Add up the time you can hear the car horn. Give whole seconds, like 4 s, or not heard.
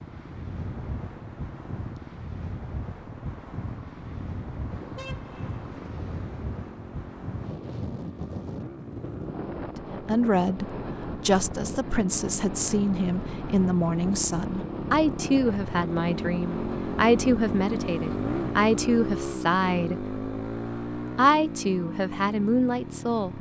2 s.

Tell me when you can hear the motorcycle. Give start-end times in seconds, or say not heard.
0.0-23.3.